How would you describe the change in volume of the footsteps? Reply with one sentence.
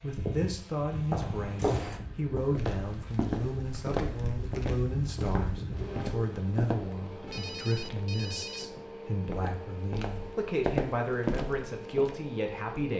The volume of the footsteps goes down, then up.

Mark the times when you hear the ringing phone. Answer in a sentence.
The ringing phone can be heard from 7.2 to 8.7 s.